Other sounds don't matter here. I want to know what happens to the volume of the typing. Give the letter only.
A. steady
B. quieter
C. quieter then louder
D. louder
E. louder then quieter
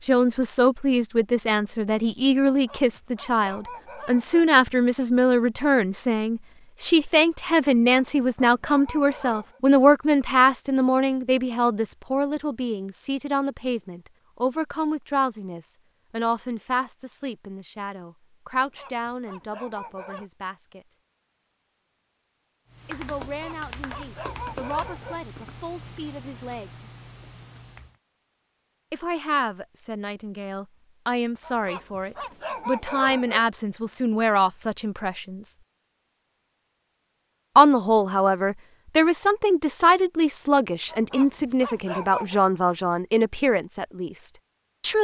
B.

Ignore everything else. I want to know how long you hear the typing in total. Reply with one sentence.
The typing can be heard for 5 seconds in total.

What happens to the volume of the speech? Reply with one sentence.
The loudness of the speech goes down, then up.